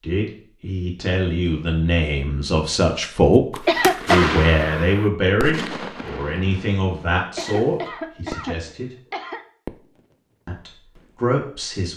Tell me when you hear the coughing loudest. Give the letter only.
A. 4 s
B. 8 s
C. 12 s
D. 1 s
A.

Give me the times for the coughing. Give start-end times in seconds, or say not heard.
3.6-4.3, 7.3-9.4.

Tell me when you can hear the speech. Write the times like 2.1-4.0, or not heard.
0.0-8.9, 10.4-11.9.